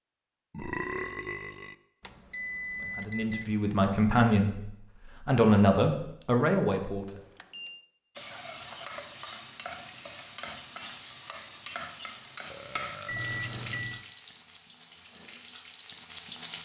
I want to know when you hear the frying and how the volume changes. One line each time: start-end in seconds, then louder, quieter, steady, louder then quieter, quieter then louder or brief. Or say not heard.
8.2-16.5 quieter.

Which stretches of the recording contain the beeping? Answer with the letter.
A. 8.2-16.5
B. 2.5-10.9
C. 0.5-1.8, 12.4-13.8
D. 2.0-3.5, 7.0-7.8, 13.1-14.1
D.